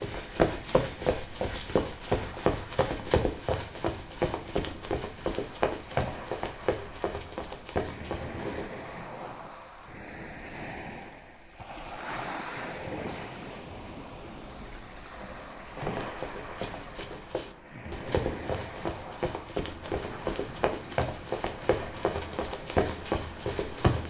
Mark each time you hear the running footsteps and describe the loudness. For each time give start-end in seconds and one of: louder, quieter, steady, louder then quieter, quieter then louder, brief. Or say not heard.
0.0-8.7 quieter
15.8-24.0 louder.